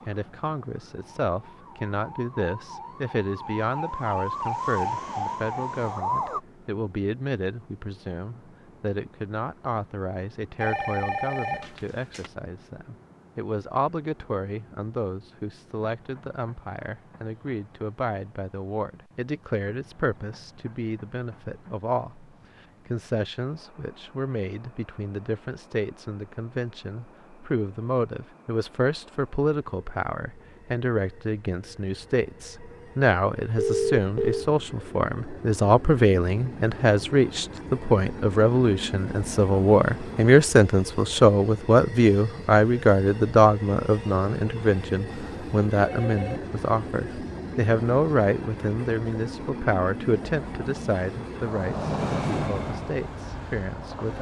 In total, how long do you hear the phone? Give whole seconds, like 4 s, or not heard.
4 s.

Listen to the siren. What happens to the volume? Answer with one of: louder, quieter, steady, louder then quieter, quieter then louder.
louder.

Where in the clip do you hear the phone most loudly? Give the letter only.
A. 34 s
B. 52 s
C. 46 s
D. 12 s
A.